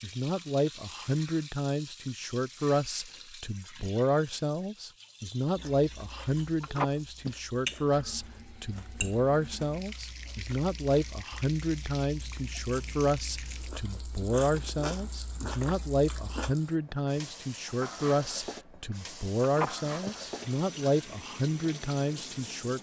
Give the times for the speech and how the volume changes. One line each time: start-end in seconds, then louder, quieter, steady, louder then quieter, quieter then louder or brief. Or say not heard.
0.0-22.7 steady.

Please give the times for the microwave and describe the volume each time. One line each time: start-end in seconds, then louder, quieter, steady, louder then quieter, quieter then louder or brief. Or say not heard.
not heard.